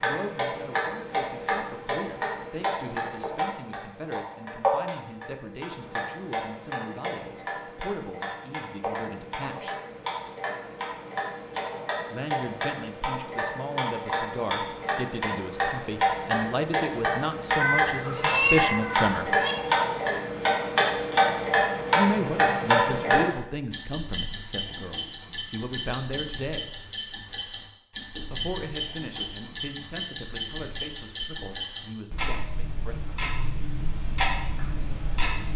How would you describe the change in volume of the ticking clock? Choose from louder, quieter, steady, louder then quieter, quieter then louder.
louder.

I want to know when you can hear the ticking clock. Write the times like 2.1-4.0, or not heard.
0.0-35.5.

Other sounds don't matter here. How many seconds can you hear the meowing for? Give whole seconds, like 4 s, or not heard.
2 s.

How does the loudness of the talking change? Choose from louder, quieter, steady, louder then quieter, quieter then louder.
louder then quieter.